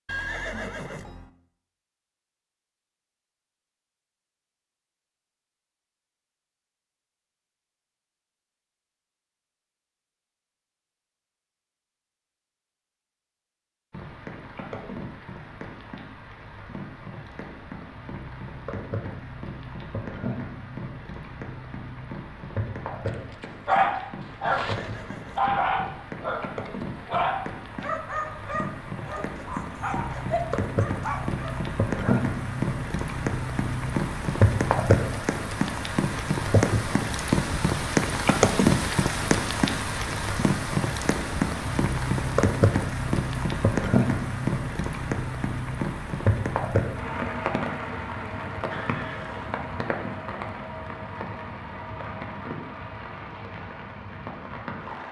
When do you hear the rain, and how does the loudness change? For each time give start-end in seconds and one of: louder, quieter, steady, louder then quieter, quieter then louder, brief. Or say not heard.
13.9-55.0 louder then quieter.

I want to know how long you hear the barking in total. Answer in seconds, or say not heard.
8 s.